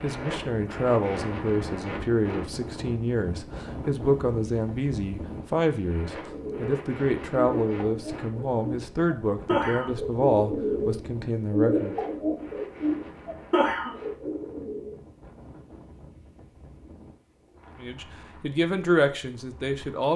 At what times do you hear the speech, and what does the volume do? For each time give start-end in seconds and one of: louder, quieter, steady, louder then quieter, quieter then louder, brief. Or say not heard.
0.0-11.9 steady
17.8-20.1 brief.